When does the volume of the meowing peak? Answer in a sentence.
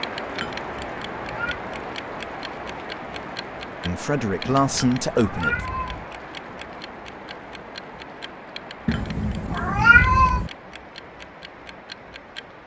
The loudest moment of the meowing is at 10 seconds.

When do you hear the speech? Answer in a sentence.
The speech can be heard from 3.8 to 5.6 s.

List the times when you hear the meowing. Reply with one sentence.
The meowing can be heard from 0.4 to 1.6 s, from 4.5 to 6.0 s and from 8.8 to 10.5 s.